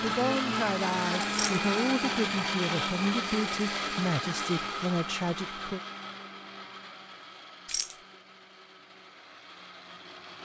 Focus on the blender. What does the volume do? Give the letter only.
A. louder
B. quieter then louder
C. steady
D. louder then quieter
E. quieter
E.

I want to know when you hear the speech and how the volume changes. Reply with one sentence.
You can hear the speech from 0.0 to 5.8 s, at a steady volume.